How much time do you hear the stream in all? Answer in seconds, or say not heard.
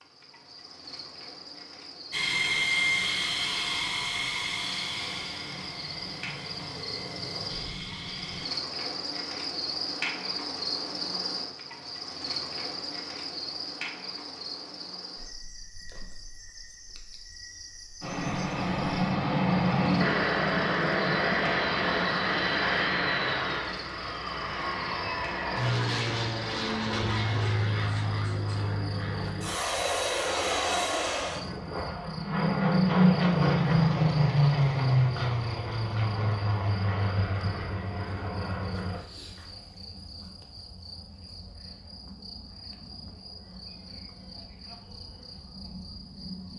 not heard.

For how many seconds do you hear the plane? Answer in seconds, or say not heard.
27 s.